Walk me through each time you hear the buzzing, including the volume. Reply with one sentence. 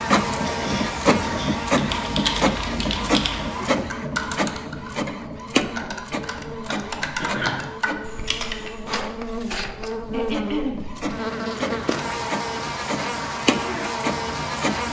You can hear the buzzing from 0.0 to 14.8 s, getting quieter then louder.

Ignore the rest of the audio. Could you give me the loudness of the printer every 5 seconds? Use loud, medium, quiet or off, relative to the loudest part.
loud, medium, medium.